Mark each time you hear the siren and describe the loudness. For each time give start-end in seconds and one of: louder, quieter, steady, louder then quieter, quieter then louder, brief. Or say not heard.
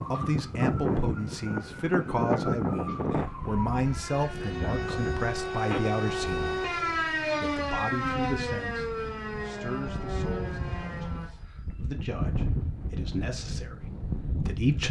0.0-11.8 louder then quieter.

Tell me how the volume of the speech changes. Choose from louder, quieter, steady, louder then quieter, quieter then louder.
quieter then louder.